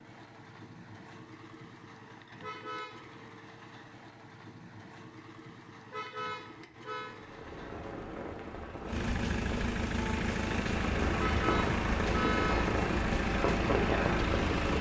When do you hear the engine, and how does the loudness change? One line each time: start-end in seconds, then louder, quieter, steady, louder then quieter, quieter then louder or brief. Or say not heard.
0.0-14.7 louder.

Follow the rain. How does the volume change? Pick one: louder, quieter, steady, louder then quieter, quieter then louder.
louder.